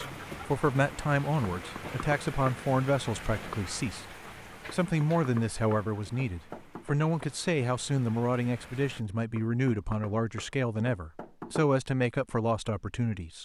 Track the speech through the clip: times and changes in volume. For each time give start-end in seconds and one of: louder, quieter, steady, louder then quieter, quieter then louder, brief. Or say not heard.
0.0-13.4 steady.